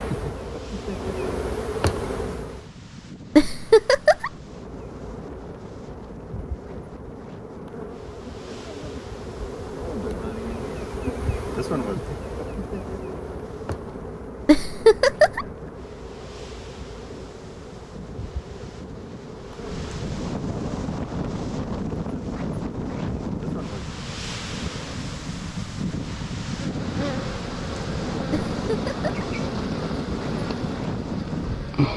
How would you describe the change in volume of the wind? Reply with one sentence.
The volume of the wind goes up.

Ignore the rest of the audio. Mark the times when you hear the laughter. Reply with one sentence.
You can hear the laughter from 3.4 to 4.3 s, from 14.4 to 15.4 s and from 28.3 to 29.2 s.